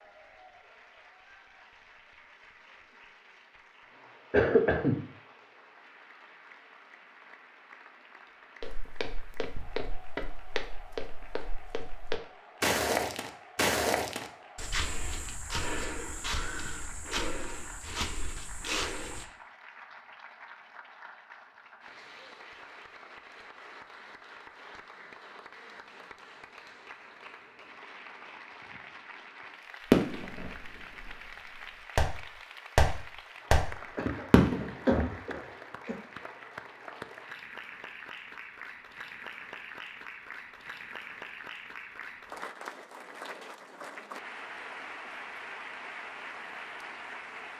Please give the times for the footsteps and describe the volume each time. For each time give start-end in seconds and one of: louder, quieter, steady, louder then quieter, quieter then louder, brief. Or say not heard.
8.6-19.2 louder then quieter.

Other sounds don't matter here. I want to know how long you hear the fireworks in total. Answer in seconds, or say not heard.
5 s.